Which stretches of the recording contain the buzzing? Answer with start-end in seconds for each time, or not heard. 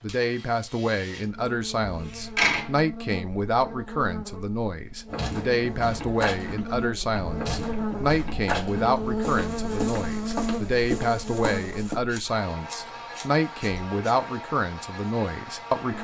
0.0-15.9.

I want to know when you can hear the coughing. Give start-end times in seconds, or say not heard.
not heard.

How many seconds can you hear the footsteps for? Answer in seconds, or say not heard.
7 s.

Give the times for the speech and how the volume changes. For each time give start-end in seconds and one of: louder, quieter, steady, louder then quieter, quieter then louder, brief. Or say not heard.
0.0-15.9 steady.